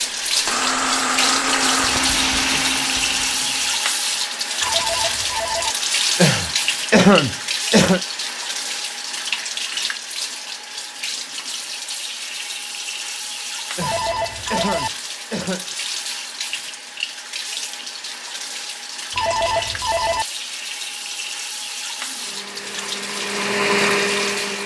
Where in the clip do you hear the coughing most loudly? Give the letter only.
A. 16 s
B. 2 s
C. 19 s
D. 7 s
D.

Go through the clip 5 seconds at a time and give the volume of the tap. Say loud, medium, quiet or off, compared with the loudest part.
loud, loud, medium, medium, medium.